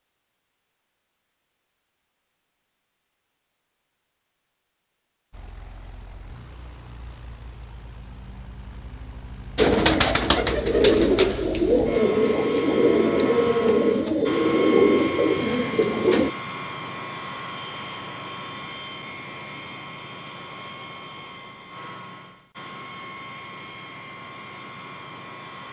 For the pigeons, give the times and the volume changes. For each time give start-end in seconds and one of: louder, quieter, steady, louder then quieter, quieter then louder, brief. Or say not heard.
9.6-16.3 steady.